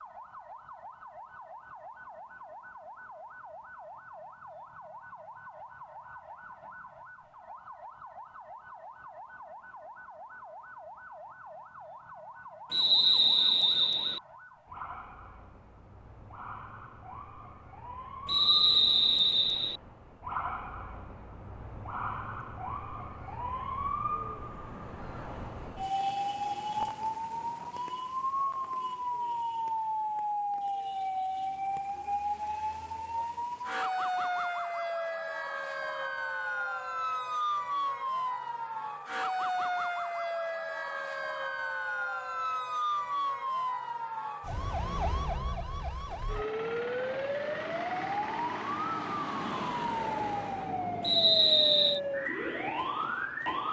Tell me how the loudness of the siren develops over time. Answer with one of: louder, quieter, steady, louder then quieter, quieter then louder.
louder.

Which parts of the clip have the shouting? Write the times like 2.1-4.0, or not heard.
not heard.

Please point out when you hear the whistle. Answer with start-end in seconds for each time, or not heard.
12.7-14.2, 18.2-19.8, 51.0-52.0.